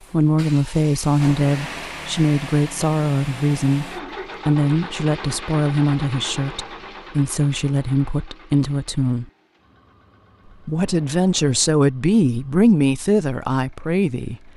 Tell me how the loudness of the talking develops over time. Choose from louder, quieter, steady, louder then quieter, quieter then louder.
steady.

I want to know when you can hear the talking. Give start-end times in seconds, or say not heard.
0.1-9.2, 10.7-14.5.